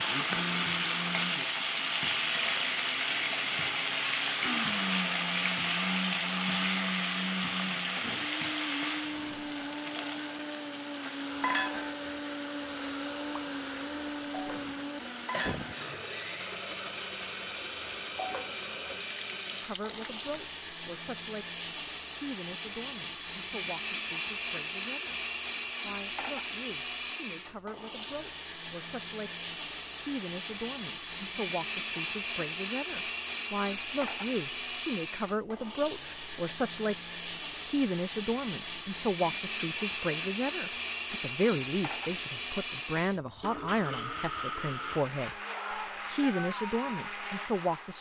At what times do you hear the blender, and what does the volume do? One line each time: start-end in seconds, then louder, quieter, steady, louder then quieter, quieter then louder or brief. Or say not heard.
0.0-47.9 steady.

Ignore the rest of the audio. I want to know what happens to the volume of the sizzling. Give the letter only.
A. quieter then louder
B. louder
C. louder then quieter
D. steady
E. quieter
E.